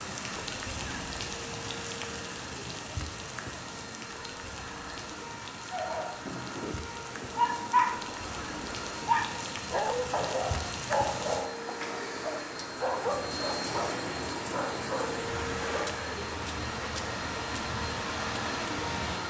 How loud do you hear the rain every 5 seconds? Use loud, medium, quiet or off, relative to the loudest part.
loud, medium, loud, loud.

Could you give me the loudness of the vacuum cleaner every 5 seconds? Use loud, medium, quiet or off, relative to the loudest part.
medium, medium, loud, loud.